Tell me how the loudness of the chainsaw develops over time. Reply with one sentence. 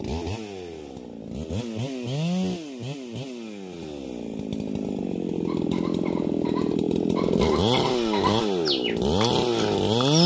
The loudness of the chainsaw goes up.